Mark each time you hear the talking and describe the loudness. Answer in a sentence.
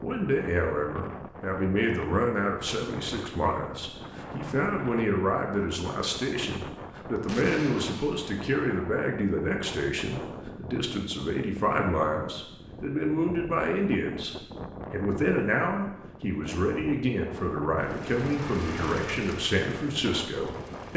You can hear the talking from 0.0 to 20.9 s, at a steady volume.